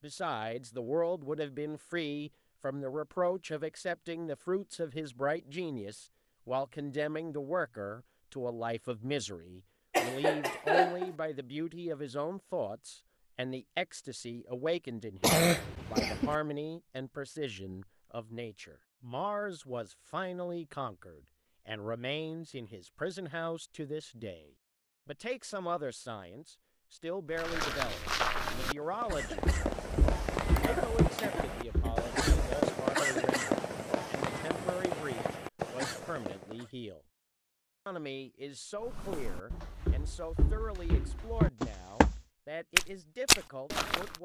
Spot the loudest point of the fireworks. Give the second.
33 s.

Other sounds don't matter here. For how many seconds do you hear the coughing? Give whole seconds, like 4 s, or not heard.
4 s.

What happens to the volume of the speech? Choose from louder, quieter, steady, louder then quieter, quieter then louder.
quieter.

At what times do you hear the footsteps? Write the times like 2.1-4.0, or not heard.
27.4-32.6, 38.8-44.1.